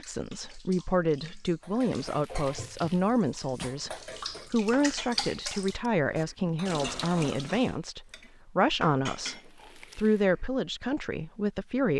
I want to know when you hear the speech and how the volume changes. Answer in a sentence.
The speech can be heard from 0.0 to 11.9 s, at a steady volume.